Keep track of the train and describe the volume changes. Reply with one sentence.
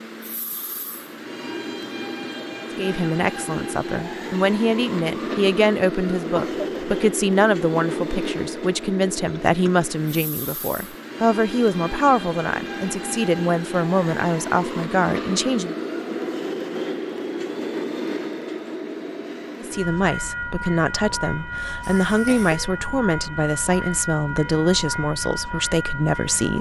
The loudness of the train stays about the same.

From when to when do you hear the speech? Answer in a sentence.
You can hear the speech from 2.8 to 15.8 s and from 19.6 to 26.5 s.